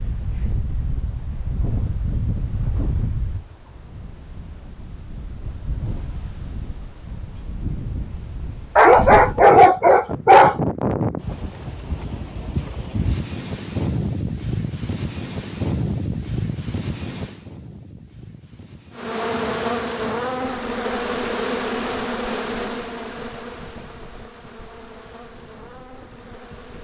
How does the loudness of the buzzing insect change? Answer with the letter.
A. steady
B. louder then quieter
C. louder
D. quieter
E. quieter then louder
D.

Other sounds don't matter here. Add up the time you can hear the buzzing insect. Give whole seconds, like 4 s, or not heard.
8 s.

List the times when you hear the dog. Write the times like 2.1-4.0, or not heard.
8.8-10.6.